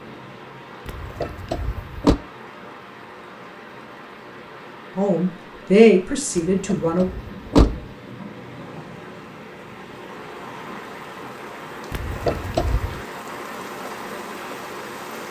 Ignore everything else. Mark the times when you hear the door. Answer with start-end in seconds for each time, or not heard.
0.8-2.1, 6.3-7.8, 11.9-13.0.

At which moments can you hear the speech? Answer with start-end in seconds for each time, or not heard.
5.0-7.1.